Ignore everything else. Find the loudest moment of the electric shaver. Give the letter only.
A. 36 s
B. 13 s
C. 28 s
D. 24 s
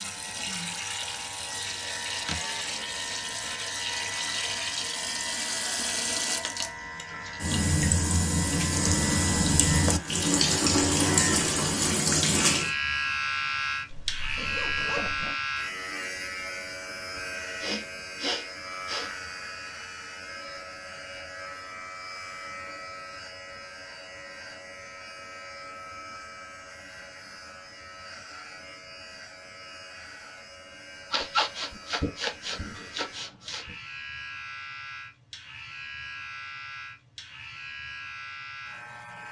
B.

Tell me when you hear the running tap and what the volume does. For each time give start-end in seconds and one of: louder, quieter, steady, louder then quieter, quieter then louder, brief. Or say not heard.
0.0-12.8 louder.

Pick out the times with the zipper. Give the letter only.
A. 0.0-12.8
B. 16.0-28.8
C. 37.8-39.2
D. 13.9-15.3
D.